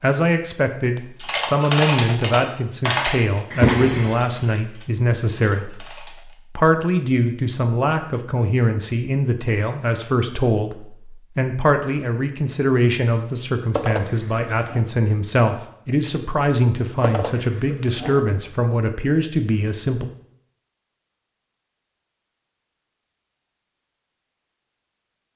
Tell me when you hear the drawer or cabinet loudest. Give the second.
4 s.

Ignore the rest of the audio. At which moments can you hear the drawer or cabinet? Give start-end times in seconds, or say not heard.
3.5-4.3, 13.8-14.8, 17.0-18.2.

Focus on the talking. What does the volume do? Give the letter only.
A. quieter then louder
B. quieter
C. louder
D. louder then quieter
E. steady
E.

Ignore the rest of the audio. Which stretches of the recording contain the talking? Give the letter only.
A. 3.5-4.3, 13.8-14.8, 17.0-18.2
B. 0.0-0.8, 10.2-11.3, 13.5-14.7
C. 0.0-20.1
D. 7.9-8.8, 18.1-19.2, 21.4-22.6
C.